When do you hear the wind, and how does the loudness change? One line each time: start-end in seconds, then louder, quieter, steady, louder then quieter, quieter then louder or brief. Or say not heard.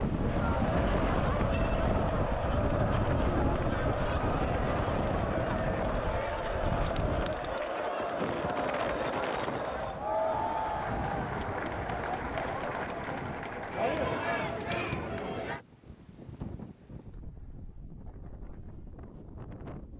0.0-19.9 quieter.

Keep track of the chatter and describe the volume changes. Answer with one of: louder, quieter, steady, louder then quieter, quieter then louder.
steady.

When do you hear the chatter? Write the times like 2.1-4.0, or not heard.
0.0-15.6.